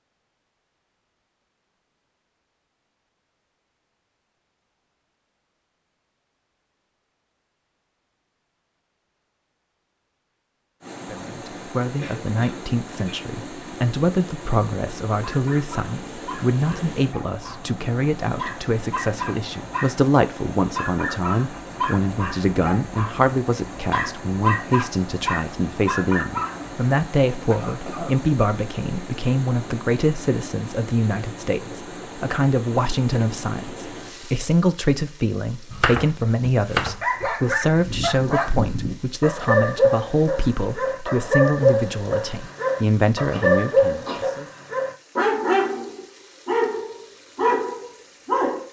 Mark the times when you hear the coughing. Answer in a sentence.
The coughing can be heard from 11.9 to 13.2 s, from 27.4 to 28.1 s and from 43.0 to 44.3 s.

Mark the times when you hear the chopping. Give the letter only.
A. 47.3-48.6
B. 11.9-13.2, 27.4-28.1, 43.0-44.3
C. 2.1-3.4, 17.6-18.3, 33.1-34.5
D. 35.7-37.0
D.